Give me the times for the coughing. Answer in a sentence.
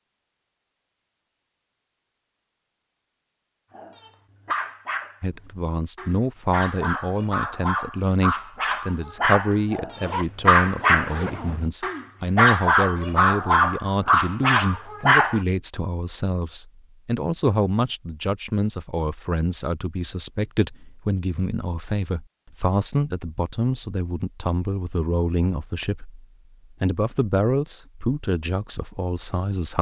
You can't hear the coughing here.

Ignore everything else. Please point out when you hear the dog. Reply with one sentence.
The dog can be heard from 3.7 to 15.4 s.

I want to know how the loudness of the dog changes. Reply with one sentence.
The loudness of the dog goes up.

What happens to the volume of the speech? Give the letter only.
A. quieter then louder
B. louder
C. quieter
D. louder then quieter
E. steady
E.